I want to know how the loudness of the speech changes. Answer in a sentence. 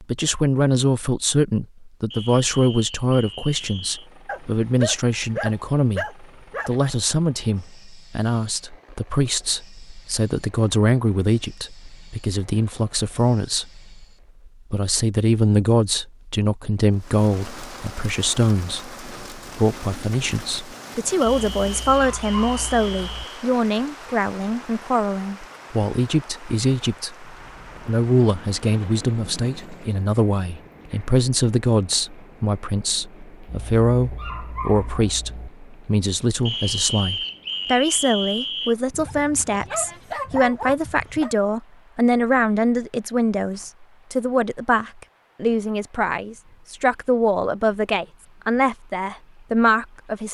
The volume of the speech stays about the same.